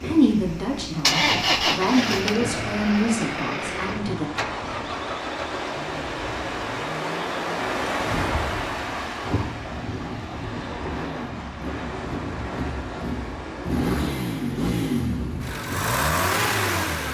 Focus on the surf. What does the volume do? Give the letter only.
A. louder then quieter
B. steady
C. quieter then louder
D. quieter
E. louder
A.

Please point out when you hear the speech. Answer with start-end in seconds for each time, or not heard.
0.0-4.2.